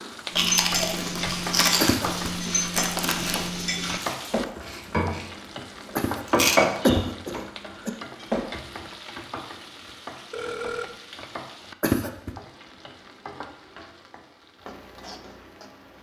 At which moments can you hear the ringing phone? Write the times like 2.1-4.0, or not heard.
10.3-10.9.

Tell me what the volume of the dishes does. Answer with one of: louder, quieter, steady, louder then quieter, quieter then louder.
louder then quieter.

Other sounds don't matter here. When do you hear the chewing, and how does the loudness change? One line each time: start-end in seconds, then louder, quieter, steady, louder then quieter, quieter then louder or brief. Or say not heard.
0.0-6.6 quieter.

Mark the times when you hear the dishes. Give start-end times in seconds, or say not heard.
0.3-8.9.